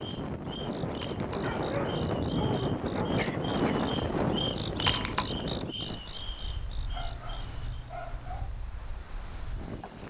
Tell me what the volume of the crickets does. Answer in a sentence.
The loudness of the crickets goes up, then down.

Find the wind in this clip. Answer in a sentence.
The wind can be heard from 0.0 to 10.0 s.